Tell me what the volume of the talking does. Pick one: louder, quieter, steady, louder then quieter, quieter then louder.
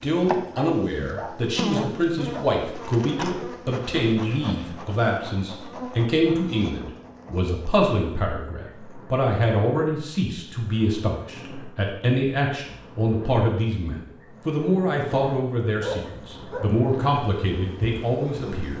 steady.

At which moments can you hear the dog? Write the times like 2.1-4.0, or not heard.
0.6-2.5, 15.8-16.8.